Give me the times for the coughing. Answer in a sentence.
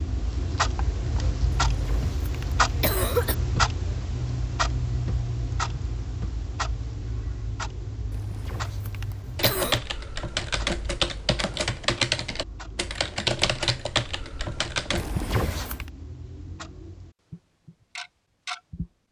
The coughing can be heard from 1.7 to 3.4 s, from 8.1 to 9.8 s and from 14.9 to 15.9 s.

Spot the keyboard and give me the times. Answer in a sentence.
The keyboard can be heard from 9.3 to 15.1 s.